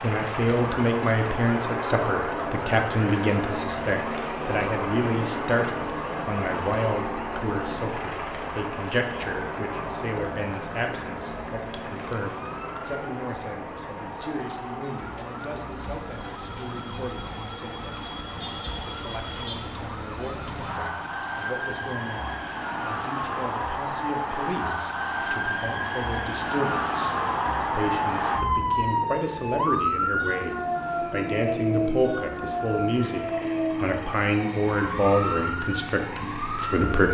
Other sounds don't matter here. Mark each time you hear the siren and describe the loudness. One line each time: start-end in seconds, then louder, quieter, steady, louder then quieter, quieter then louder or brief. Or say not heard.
0.0-37.0 louder.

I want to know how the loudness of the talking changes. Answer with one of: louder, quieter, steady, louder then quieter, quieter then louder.
quieter then louder.